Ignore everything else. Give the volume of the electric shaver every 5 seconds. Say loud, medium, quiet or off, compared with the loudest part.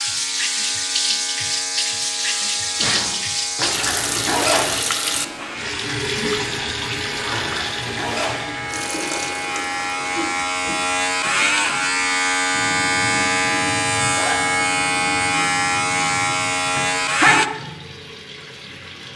quiet, medium, loud, loud.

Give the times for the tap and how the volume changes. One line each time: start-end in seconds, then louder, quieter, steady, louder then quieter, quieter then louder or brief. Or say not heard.
0.0-19.1 quieter.